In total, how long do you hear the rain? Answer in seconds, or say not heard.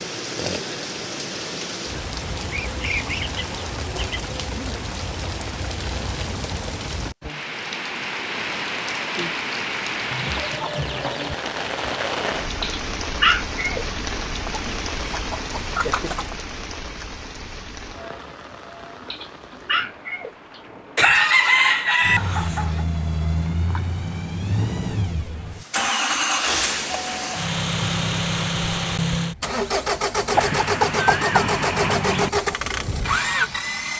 24 s.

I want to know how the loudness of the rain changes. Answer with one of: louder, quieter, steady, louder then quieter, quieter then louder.
quieter.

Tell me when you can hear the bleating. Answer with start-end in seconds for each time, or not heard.
not heard.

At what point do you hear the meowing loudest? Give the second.
13 s.